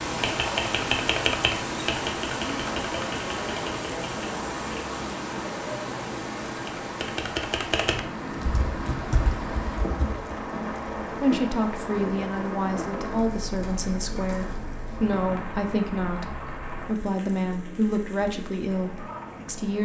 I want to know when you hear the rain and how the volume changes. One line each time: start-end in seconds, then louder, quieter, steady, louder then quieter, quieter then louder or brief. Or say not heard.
0.0-19.8 quieter.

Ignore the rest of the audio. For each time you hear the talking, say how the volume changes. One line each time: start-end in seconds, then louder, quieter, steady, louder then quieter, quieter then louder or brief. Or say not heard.
11.2-19.8 steady.